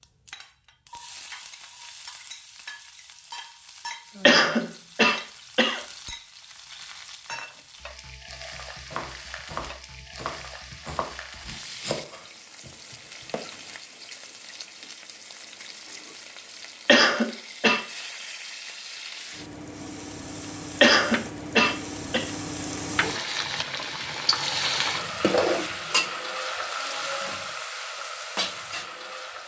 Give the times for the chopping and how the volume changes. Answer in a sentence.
You can hear the chopping from 8.8 to 13.4 s, getting quieter.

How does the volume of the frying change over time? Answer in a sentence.
The loudness of the frying goes up.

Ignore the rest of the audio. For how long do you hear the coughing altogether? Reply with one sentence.
The coughing can be heard for 4 seconds in total.